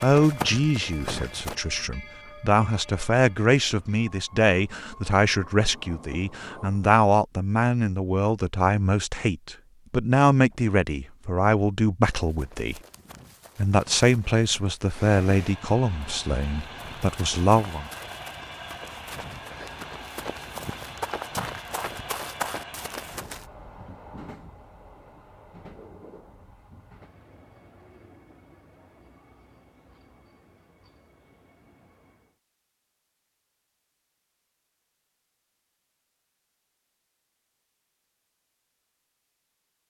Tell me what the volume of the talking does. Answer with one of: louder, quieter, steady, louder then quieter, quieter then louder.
steady.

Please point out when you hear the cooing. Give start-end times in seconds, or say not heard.
not heard.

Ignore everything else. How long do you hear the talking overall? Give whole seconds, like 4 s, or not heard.
17 s.